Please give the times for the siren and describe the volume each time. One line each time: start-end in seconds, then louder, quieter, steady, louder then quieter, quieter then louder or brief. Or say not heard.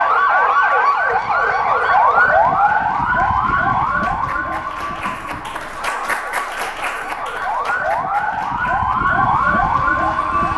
0.0-10.5 quieter then louder.